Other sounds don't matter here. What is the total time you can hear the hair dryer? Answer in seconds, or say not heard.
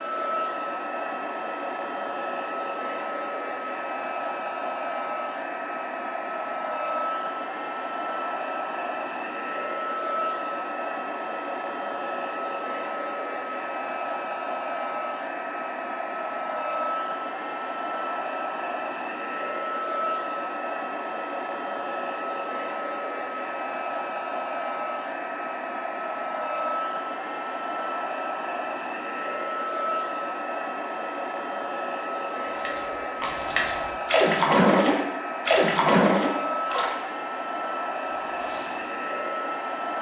40 s.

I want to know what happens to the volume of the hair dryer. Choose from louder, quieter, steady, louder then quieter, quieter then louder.
steady.